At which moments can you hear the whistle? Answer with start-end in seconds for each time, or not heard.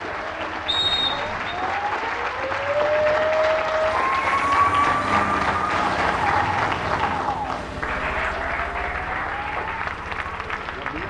0.7-1.6.